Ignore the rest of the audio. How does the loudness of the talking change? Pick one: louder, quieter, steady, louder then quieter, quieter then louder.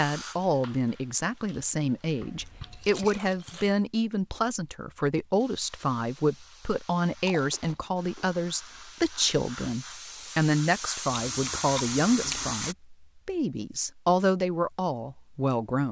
steady.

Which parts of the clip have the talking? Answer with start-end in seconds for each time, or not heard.
0.0-15.8.